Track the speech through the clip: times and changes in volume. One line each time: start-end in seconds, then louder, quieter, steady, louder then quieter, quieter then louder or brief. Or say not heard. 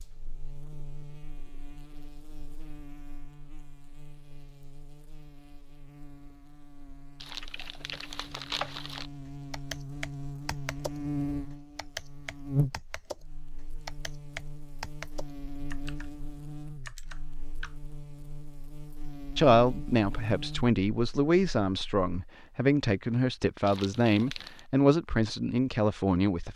19.4-26.5 steady.